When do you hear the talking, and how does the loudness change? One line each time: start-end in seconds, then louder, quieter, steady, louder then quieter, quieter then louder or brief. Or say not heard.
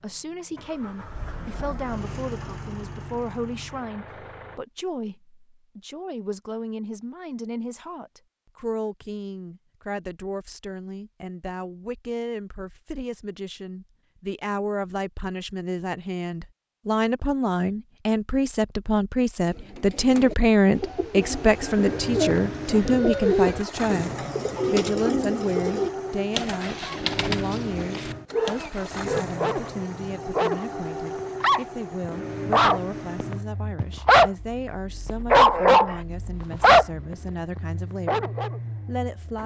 0.0-39.4 louder then quieter.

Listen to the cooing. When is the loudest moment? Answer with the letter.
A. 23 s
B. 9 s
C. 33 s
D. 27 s
A.